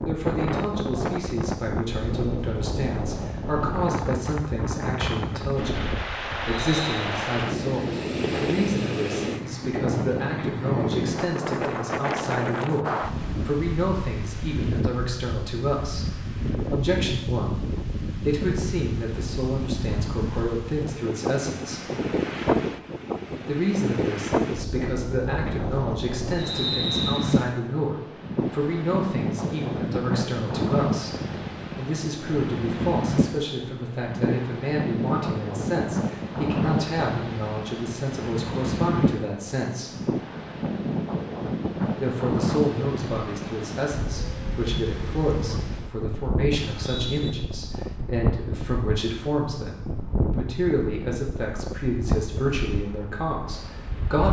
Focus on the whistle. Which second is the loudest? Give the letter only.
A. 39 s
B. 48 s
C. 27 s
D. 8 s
C.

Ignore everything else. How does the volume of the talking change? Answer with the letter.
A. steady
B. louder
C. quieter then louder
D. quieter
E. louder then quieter
A.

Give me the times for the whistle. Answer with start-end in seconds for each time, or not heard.
6.6-7.0, 26.4-27.3, 46.5-47.3.